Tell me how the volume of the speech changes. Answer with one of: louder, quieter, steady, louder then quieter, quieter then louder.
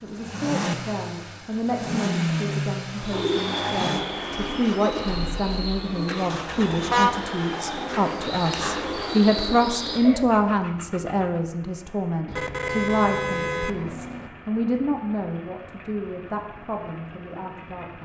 louder then quieter.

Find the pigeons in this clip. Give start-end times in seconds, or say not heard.
3.0-10.4.